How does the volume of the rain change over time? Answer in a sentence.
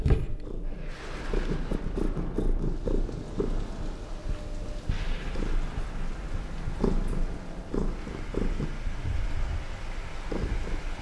The volume of the rain stays about the same.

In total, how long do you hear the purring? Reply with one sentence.
The purring can be heard for 11 seconds in total.